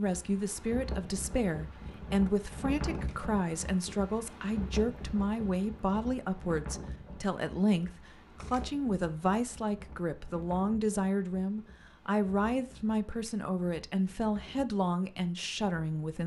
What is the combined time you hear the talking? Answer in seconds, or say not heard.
16 s.